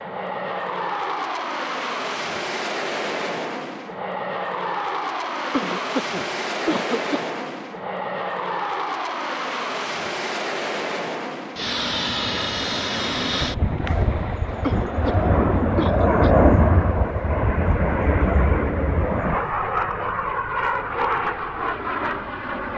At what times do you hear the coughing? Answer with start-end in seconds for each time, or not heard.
5.5-7.3, 14.6-16.3.